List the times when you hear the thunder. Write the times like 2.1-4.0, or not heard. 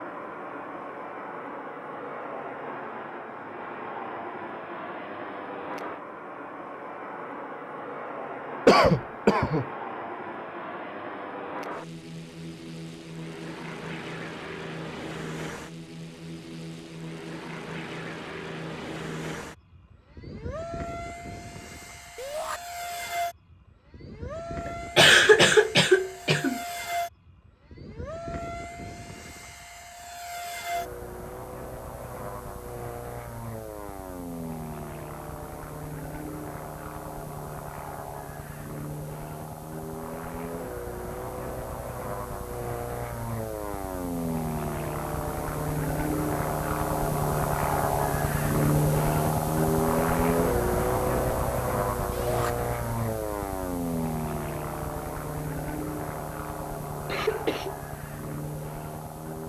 not heard.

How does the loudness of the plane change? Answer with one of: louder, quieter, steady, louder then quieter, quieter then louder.
louder.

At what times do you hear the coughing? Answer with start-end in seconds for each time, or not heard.
8.7-9.7, 24.9-26.6, 57.0-57.7.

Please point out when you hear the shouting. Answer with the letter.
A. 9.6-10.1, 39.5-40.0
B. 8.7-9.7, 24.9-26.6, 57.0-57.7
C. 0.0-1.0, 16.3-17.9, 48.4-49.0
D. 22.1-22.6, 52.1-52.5
D.